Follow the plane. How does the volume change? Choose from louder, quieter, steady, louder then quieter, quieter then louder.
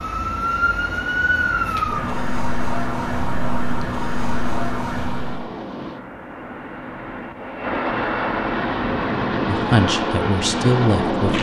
louder.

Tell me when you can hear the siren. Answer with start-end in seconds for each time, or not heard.
0.0-5.5.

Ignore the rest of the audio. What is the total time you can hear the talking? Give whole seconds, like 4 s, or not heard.
2 s.